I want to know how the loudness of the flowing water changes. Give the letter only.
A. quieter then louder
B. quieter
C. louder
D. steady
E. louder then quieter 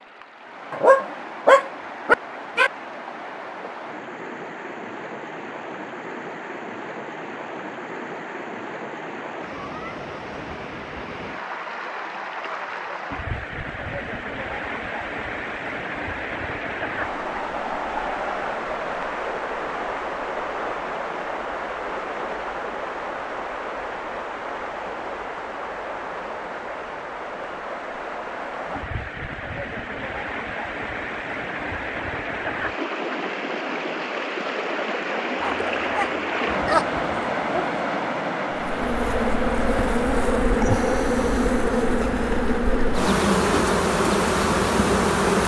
C.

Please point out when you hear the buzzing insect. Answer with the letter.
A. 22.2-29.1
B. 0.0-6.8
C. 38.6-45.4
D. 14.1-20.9
C.